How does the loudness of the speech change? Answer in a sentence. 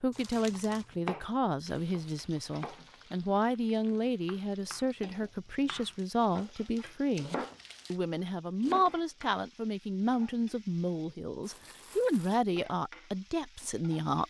The loudness of the speech stays about the same.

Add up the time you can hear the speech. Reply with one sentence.
You can hear the speech for 14 seconds altogether.